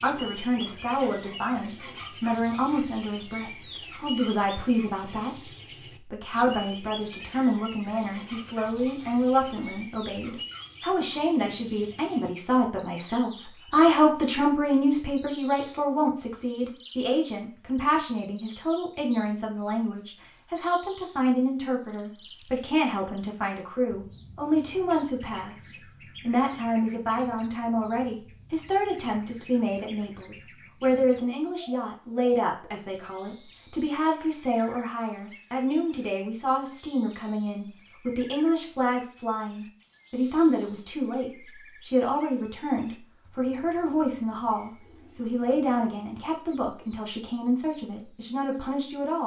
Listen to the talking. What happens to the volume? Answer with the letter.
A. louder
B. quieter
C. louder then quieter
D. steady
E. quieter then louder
D.